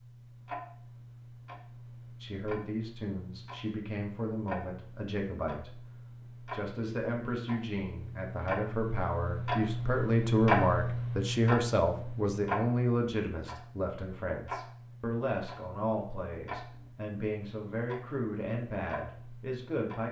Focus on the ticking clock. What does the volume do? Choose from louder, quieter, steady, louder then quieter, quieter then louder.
louder then quieter.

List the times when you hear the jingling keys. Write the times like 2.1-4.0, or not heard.
not heard.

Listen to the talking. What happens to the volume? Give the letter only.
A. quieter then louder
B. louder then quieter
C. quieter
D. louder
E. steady
B.